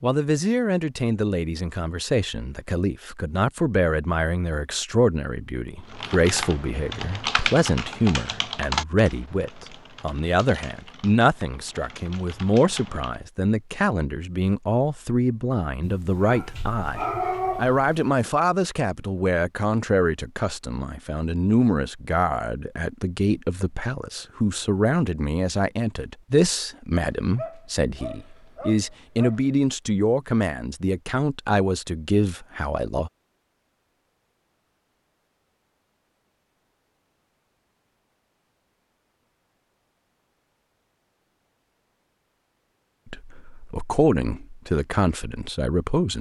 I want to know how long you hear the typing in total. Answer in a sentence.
You can hear the typing for 7 seconds altogether.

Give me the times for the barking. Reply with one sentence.
You can hear the barking from 15.8 to 18.1 s and from 26.9 to 29.6 s.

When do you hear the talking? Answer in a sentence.
You can hear the talking from 0.0 to 33.1 s and from 43.1 to 46.1 s.